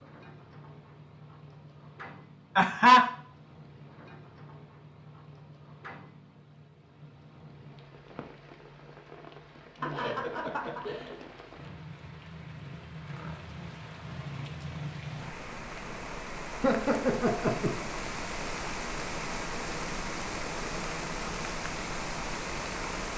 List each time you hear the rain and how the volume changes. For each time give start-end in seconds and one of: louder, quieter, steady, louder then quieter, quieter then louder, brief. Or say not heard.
0.0-23.1 louder.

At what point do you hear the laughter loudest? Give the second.
3 s.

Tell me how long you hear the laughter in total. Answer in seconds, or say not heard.
3 s.